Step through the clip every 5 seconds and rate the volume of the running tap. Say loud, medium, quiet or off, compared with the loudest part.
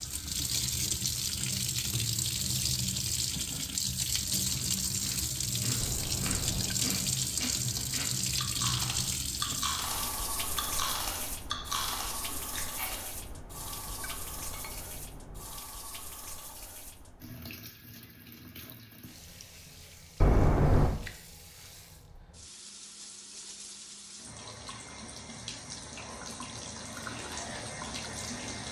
loud, loud, medium, quiet, quiet, medium.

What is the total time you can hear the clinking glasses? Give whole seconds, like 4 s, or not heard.
4 s.